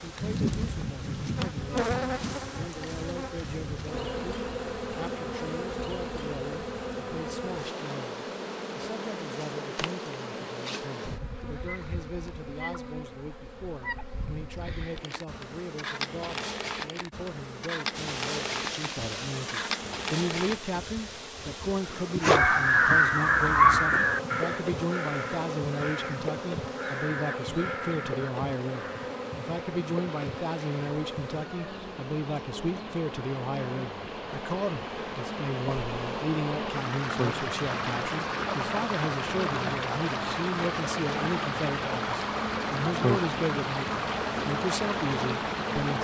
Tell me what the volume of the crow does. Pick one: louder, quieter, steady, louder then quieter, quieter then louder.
quieter.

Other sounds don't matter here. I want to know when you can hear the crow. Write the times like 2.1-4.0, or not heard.
22.2-29.1.